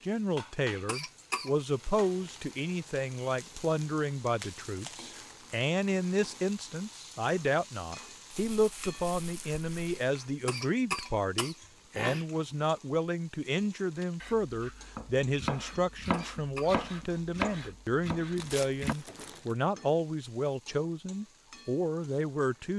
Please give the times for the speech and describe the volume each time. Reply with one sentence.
You can hear the speech from 0.0 to 22.7 s, at a steady volume.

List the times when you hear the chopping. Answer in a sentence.
You can hear the chopping from 14.0 to 19.4 s.